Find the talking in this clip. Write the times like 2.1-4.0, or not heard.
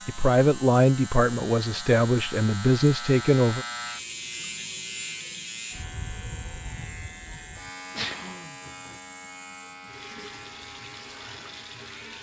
0.1-3.6.